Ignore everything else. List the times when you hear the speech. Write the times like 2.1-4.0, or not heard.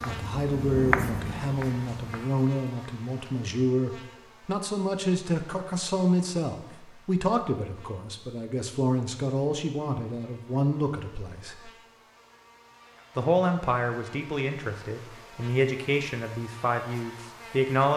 0.0-11.7, 13.2-17.9.